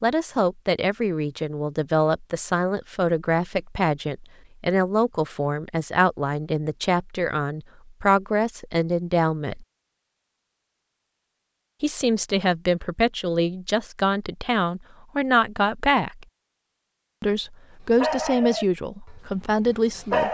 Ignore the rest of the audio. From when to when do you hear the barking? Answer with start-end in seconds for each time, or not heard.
17.9-20.3.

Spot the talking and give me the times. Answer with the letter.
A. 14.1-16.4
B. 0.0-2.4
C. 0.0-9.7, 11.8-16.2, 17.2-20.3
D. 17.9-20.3
C.